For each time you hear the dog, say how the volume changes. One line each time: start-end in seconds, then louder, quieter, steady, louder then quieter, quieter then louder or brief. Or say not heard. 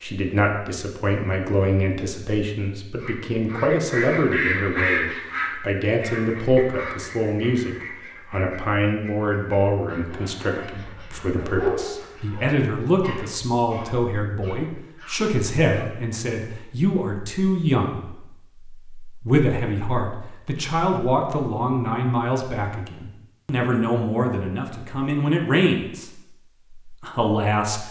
10.1-15.8 louder then quieter.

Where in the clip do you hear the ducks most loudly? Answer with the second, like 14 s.
5 s.